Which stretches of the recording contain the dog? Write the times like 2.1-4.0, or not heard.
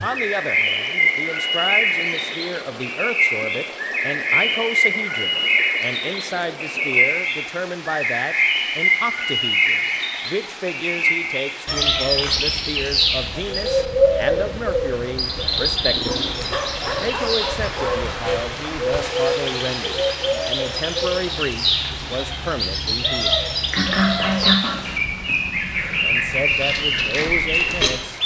15.9-18.1.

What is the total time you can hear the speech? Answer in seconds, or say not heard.
25 s.